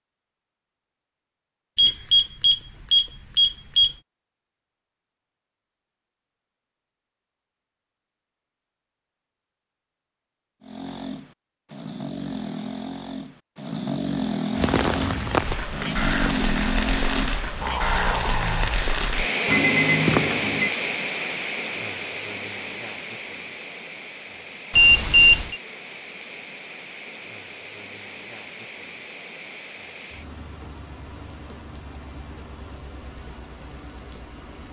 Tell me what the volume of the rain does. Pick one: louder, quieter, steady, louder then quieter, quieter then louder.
quieter.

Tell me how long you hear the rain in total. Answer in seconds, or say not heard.
20 s.